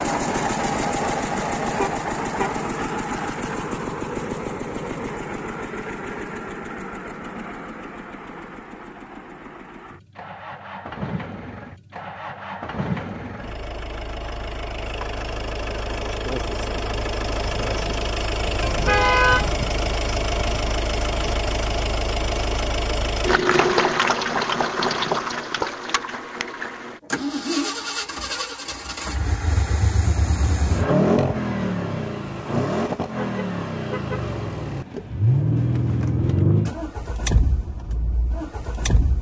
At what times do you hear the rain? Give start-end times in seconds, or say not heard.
not heard.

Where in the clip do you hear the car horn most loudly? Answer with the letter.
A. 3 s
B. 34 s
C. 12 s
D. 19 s
D.